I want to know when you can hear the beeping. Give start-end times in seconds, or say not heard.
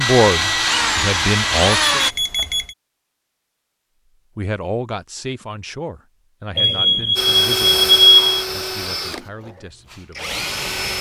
1.8-2.8, 6.5-8.4.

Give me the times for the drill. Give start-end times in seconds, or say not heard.
0.0-2.1, 7.2-10.9.